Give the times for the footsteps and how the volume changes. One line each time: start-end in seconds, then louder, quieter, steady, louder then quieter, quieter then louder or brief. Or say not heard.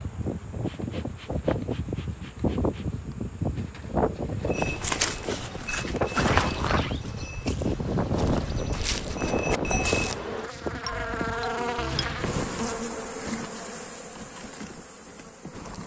4.5-10.2 quieter then louder.